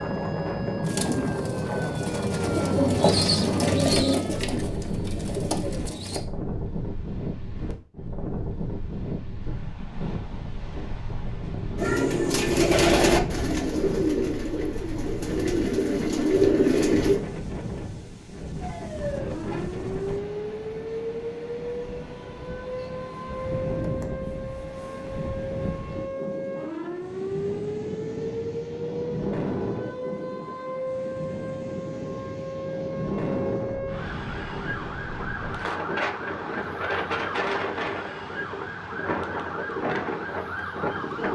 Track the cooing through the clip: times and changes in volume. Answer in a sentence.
The cooing can be heard from 0.8 to 6.2 s, getting louder then quieter; and from 11.8 to 17.2 s, getting quieter then louder.